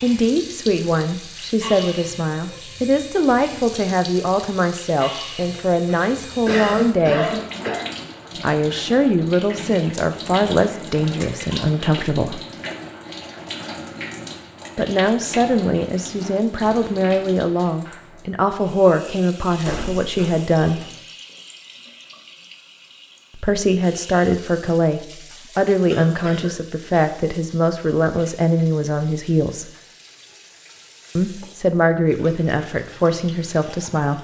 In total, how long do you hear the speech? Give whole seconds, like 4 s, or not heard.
27 s.